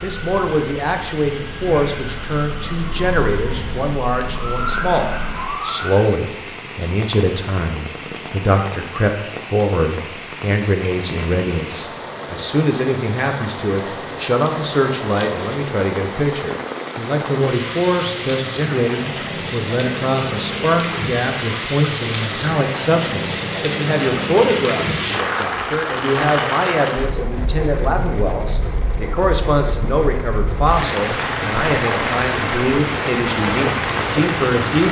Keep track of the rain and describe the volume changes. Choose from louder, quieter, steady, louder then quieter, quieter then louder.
louder.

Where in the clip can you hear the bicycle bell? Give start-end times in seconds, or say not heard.
not heard.